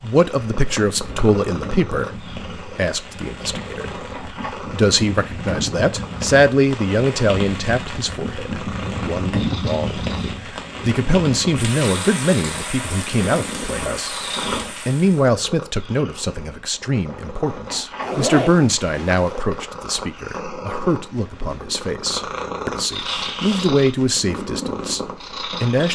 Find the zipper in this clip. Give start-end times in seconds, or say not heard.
18.0-19.4.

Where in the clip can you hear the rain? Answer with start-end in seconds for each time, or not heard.
0.0-15.3.